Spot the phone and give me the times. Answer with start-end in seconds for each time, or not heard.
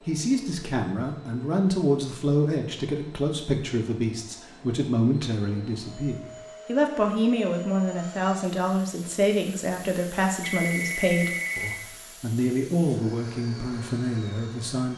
10.4-11.8.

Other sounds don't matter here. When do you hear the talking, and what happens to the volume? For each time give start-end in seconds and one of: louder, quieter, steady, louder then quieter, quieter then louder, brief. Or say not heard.
0.1-14.9 steady.